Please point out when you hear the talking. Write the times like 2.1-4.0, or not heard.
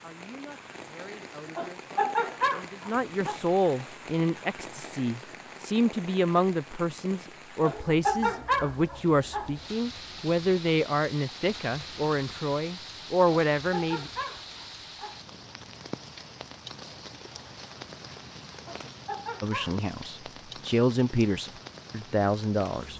0.0-14.1, 19.4-22.9.